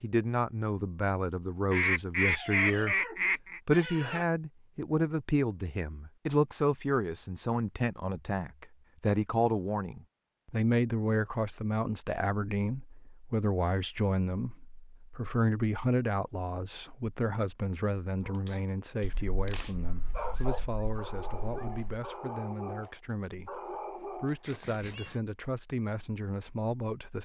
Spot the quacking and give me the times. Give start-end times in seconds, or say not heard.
1.7-3.6, 19.0-21.9.